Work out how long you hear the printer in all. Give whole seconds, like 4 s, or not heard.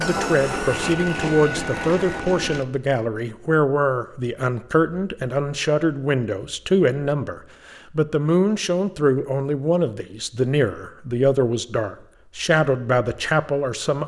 3 s.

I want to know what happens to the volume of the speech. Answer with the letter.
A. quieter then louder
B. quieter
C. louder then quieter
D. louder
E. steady
E.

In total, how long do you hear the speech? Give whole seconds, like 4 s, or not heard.
14 s.